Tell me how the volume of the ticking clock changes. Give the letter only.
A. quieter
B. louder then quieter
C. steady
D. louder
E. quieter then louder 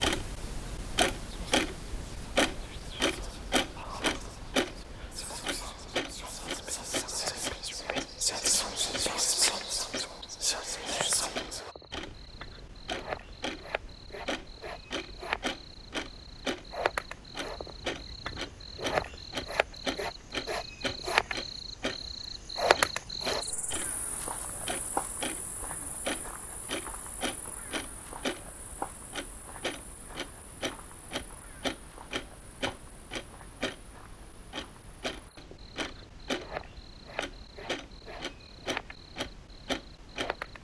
A.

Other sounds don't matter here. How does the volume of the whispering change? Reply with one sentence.
The volume of the whispering goes up.